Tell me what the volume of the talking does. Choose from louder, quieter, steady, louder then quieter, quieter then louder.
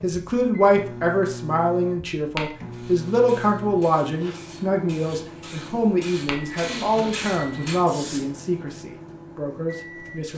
quieter.